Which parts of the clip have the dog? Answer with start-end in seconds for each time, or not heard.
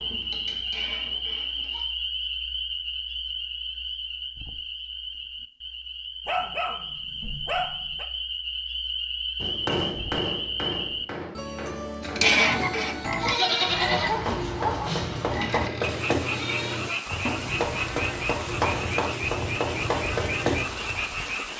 6.2-8.1, 13.9-15.0.